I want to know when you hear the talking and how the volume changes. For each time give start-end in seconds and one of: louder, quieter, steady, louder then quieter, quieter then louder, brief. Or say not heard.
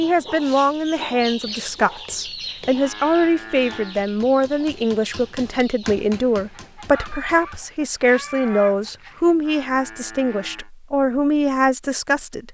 0.0-12.4 steady.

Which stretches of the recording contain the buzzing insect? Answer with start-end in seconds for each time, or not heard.
not heard.